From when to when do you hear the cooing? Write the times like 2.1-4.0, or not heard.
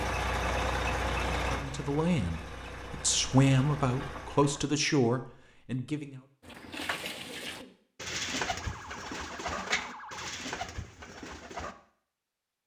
6.4-11.8.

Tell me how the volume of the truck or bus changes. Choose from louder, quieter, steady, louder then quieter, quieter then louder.
quieter.